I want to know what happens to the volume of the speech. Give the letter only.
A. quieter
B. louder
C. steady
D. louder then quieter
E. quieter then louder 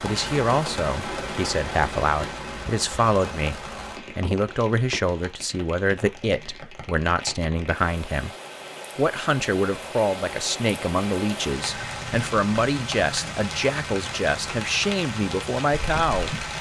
C.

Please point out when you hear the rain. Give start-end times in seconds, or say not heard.
0.0-16.5.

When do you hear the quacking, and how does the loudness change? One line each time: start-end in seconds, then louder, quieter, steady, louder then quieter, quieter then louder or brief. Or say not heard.
not heard.